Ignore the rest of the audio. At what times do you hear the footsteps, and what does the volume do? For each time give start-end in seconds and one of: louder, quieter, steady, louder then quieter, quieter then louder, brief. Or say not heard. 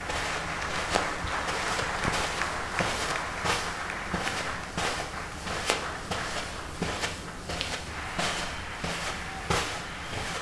0.0-10.3 steady.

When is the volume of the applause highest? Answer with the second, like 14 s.
2 s.